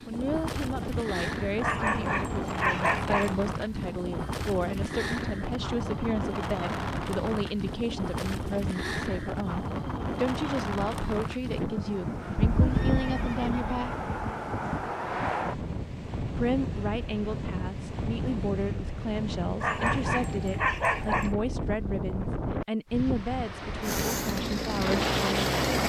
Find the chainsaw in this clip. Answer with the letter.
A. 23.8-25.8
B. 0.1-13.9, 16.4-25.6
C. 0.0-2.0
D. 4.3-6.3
A.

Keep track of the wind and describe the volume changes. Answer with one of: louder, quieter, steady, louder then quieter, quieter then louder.
steady.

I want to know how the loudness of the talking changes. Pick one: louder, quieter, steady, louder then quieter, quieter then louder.
steady.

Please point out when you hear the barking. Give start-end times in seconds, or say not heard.
1.6-3.4, 19.6-21.4.